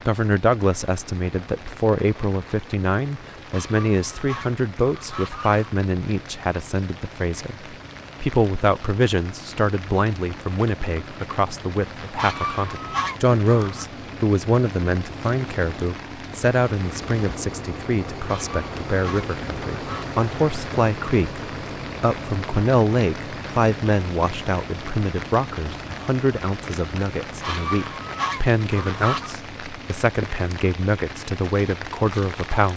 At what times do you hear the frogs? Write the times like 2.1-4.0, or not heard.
not heard.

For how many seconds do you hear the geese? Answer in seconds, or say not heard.
8 s.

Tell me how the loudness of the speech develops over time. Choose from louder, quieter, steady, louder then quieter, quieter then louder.
steady.